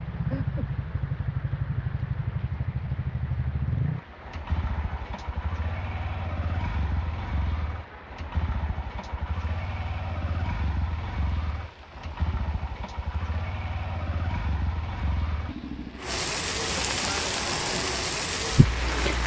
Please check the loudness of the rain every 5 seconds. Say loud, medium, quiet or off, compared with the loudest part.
quiet, quiet, quiet, loud.